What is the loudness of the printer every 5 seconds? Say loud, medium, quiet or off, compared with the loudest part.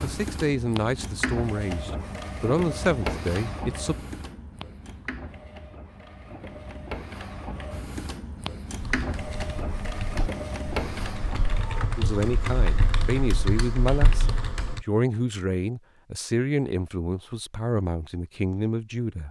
loud, loud, loud, off.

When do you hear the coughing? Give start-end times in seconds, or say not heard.
not heard.